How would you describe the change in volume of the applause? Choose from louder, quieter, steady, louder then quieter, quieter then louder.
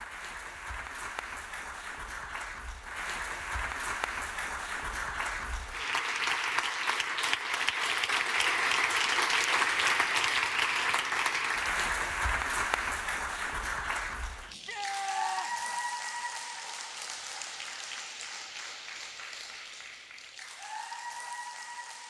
louder then quieter.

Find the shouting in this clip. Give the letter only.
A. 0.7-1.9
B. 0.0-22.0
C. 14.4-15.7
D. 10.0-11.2
C.